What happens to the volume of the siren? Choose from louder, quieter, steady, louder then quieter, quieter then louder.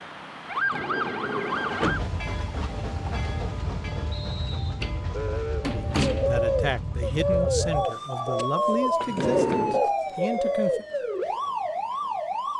quieter then louder.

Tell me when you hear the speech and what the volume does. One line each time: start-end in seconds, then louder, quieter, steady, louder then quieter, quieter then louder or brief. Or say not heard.
5.6-10.8 steady.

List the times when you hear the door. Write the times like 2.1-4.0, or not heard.
0.6-2.1, 4.8-6.3, 9.0-9.8.